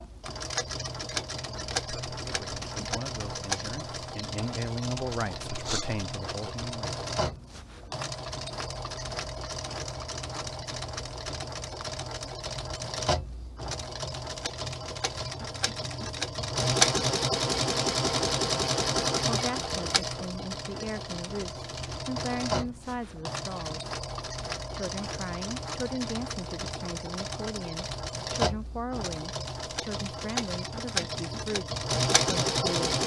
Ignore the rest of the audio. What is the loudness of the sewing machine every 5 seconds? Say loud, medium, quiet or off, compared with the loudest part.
medium, medium, medium, loud, medium, medium, loud.